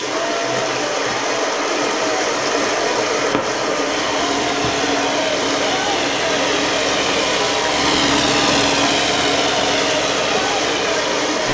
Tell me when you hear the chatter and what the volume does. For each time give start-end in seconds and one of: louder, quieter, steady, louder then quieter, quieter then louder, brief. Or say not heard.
0.0-11.5 steady.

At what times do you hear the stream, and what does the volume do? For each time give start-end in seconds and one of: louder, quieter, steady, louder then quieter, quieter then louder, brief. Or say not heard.
0.0-11.5 steady.